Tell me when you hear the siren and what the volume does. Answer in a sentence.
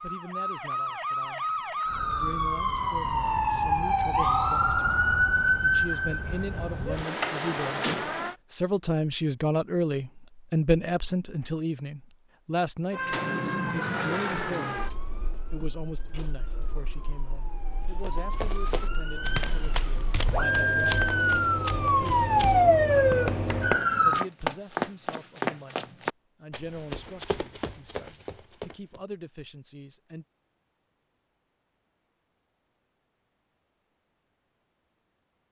You can hear the siren from 0.0 to 8.3 s, getting louder then quieter; and from 12.9 to 24.2 s, getting quieter then louder.